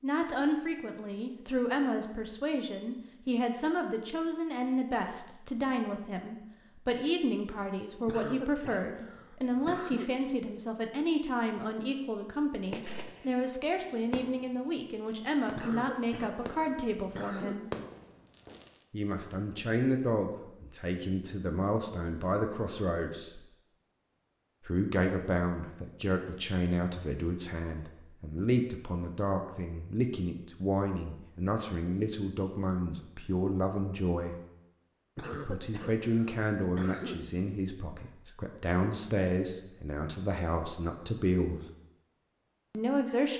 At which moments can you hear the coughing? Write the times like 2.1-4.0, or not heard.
8.1-10.1, 15.6-17.6, 35.1-37.1.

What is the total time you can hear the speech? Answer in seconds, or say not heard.
39 s.